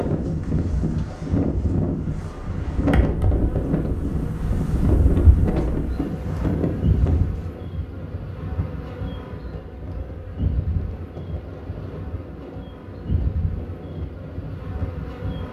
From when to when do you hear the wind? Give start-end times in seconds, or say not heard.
0.0-15.4.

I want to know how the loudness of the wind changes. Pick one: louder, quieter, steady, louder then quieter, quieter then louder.
quieter.